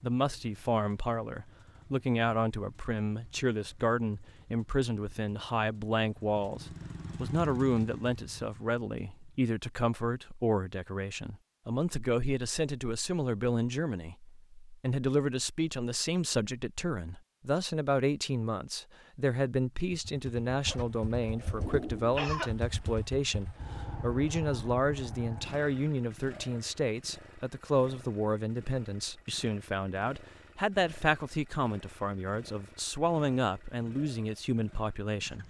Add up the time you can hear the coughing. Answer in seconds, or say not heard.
2 s.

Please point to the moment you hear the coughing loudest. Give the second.
22 s.